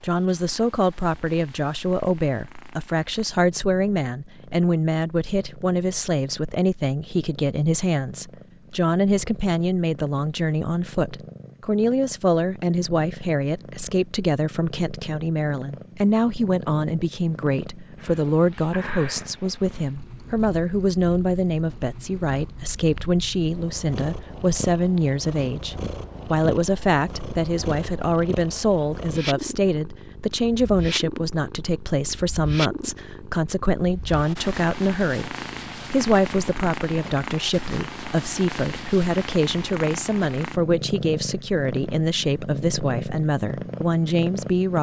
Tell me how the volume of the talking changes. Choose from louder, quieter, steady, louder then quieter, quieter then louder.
steady.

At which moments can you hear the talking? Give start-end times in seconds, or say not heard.
0.0-44.7.